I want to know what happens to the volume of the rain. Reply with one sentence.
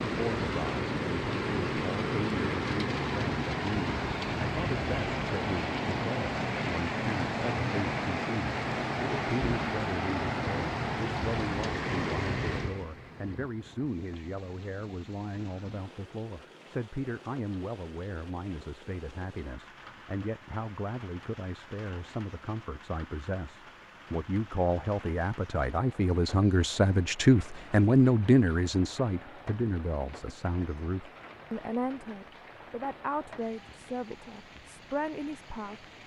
The volume of the rain goes down.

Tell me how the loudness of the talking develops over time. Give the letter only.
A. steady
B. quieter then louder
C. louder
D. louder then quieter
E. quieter
D.